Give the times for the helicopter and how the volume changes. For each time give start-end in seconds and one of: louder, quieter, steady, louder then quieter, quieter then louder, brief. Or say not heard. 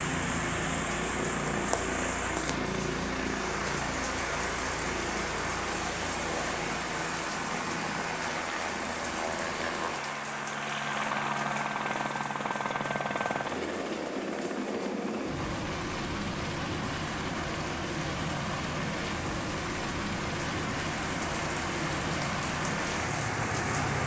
0.0-24.0 steady.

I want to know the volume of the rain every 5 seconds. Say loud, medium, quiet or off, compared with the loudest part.
loud, loud, medium, medium, loud.